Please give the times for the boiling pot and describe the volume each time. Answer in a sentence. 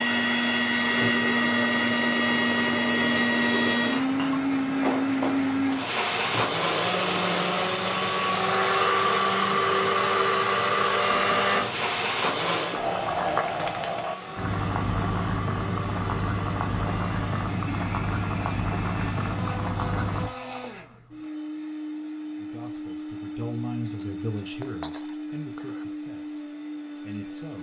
The boiling pot can be heard from 0.0 to 20.3 s, getting louder.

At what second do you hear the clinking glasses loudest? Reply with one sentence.
The loudest moment of the clinking glasses is at 5 seconds.